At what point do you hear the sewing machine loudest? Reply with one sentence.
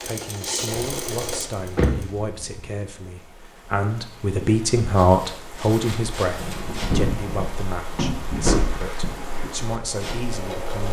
The loudest moment of the sewing machine is at 1 second.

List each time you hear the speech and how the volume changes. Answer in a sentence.
The speech can be heard from 0.1 to 10.8 s, getting louder then quieter.